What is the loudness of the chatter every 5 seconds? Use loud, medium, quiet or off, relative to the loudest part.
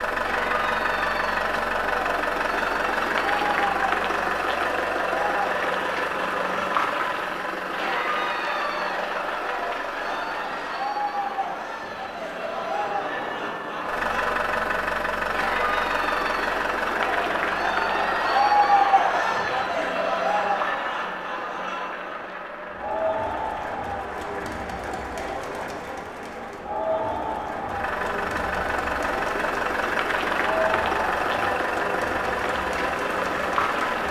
medium, medium, medium, loud, medium, medium, medium.